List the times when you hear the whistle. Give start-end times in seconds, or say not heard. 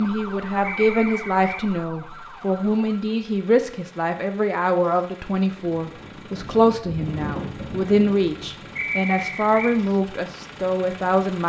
0.6-1.6, 8.8-9.8.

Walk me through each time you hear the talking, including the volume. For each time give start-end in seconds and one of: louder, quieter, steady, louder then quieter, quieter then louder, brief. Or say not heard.
0.0-11.4 steady.